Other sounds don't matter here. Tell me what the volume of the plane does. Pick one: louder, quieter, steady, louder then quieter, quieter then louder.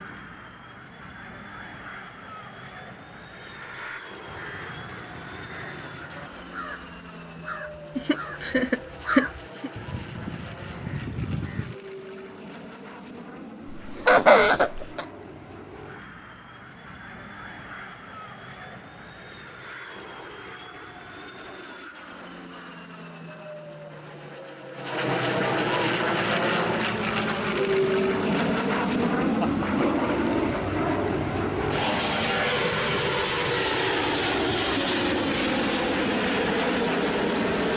louder.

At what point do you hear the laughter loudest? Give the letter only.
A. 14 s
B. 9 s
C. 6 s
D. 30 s
A.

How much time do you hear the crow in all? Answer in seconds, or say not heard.
9 s.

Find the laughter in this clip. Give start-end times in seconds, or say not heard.
8.0-9.7, 13.7-15.1, 29.4-29.9.